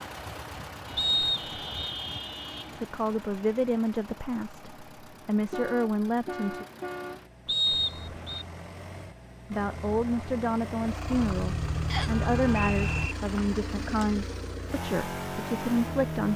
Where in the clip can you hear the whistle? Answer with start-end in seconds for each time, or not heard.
0.9-1.9, 7.5-8.4, 11.9-13.2.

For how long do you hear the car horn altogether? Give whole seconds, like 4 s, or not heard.
6 s.